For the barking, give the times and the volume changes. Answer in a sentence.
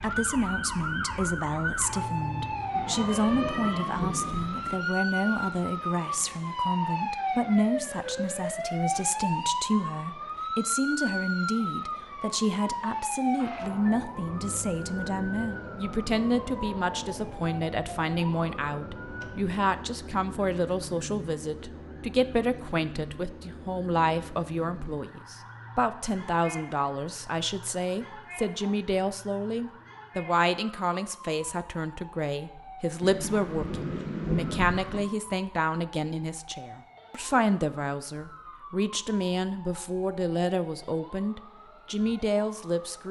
The barking can't be heard in this clip.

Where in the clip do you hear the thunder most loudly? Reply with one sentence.
The volume of the thunder peaks at 34 seconds.